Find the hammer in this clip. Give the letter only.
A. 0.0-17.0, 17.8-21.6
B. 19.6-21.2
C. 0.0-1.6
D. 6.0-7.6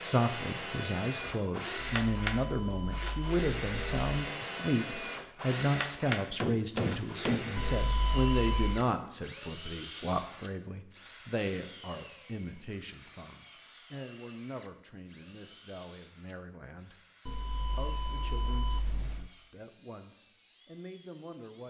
D.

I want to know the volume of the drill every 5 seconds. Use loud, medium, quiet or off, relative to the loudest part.
loud, loud, quiet, quiet, quiet.